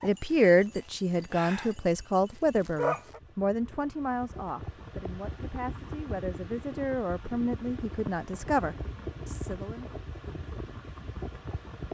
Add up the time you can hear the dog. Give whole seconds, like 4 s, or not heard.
3 s.